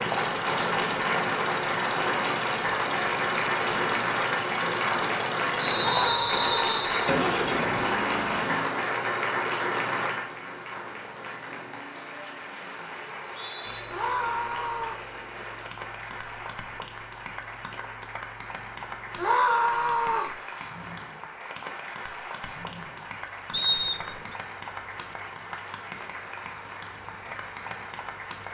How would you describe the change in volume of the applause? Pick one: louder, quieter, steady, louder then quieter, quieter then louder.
quieter.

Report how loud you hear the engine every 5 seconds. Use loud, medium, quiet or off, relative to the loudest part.
loud, loud, quiet, quiet, quiet, quiet.